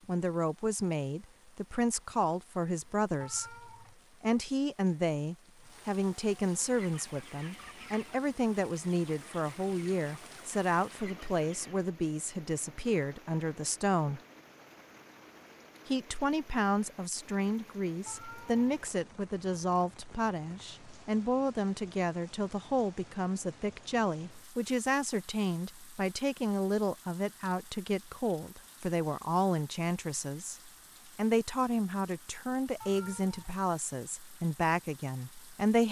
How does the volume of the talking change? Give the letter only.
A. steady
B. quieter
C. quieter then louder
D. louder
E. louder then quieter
A.